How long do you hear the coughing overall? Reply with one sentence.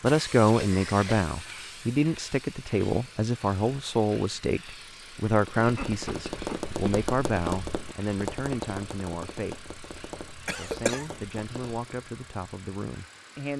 The coughing can be heard for 3 seconds in total.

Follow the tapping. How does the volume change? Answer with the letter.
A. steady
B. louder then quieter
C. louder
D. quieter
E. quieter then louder
D.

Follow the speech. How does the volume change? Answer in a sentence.
The volume of the speech goes down.